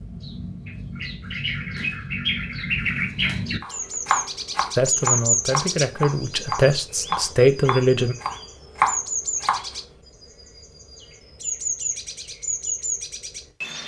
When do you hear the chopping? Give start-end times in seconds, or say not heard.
3.6-9.7.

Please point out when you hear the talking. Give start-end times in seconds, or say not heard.
4.8-8.2.